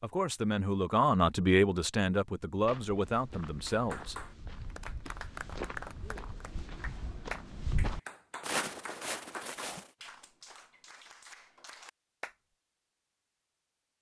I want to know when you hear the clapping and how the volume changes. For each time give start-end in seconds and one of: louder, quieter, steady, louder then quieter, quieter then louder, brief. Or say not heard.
3.6-12.3 quieter.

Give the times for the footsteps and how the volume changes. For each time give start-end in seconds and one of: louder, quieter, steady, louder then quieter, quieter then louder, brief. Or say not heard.
2.5-9.9 louder.